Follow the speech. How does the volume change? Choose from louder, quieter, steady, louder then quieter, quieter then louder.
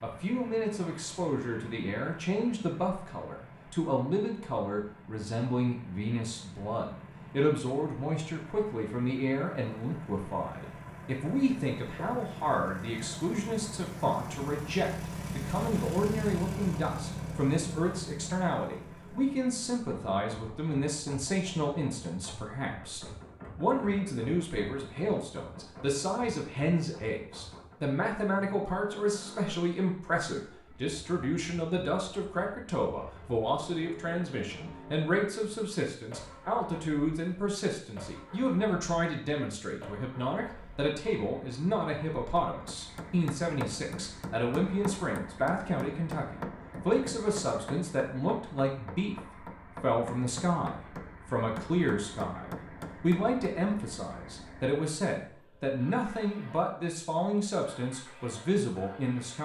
steady.